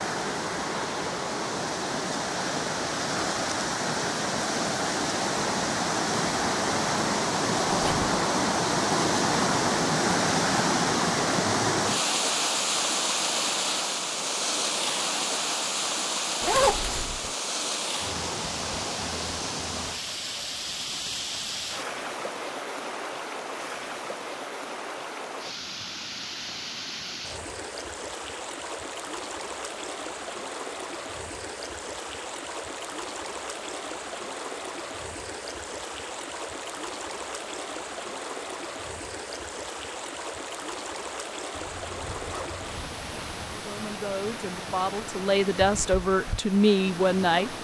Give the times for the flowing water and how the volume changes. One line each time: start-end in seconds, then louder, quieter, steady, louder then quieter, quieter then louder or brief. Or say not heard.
0.0-47.6 quieter.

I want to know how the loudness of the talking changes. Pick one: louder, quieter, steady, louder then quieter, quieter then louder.
louder.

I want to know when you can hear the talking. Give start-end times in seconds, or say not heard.
43.5-47.5.